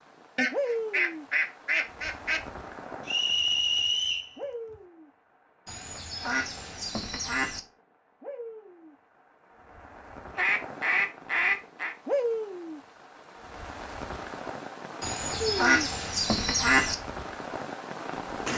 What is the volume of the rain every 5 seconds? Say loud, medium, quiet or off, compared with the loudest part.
loud, quiet, loud, loud.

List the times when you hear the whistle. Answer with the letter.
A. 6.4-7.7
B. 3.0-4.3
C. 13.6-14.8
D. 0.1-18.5
B.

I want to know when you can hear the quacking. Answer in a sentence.
You can hear the quacking from 0.3 to 2.4 s, from 5.7 to 7.6 s, from 10.3 to 11.9 s and from 15.0 to 16.9 s.